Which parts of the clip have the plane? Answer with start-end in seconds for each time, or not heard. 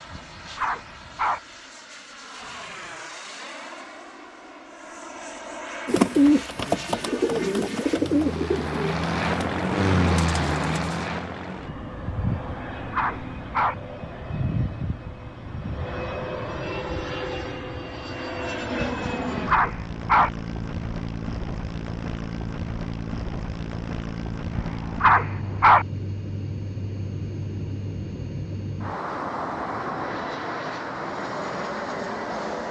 0.0-32.6.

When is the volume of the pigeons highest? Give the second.
6 s.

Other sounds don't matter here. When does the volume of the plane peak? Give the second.
10 s.